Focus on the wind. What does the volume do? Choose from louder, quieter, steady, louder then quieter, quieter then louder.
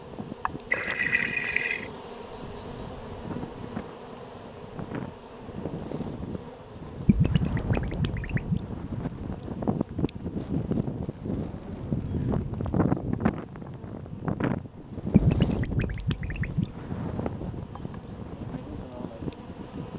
louder then quieter.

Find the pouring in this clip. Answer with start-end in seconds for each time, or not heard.
0.7-1.9, 7.0-8.6, 15.1-16.7.